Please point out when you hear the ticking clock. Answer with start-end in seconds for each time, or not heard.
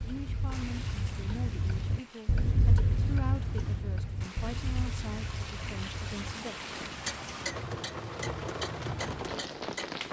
0.0-10.0.